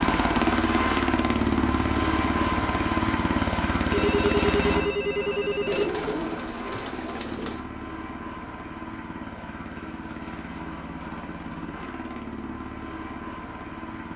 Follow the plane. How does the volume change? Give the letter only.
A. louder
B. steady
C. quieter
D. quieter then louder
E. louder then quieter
C.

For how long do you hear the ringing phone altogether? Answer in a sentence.
You can hear the ringing phone for 2 seconds altogether.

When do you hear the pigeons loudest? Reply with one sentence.
The volume of the pigeons peaks at 6 seconds.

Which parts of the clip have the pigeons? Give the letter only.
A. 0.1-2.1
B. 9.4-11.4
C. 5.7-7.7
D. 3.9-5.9
C.